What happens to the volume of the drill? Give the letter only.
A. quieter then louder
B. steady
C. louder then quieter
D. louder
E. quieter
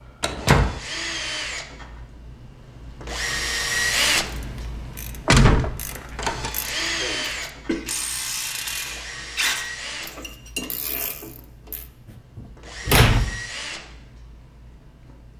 C.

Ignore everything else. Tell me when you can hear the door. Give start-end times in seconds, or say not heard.
0.2-0.8, 5.2-6.5, 12.3-13.3.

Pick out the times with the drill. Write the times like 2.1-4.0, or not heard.
0.0-15.3.